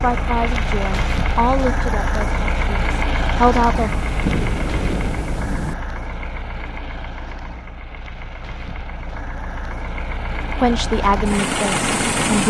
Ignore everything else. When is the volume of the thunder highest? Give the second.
4 s.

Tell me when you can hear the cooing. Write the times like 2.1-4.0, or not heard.
not heard.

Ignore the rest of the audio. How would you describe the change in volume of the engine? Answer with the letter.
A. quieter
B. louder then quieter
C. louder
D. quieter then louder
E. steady
D.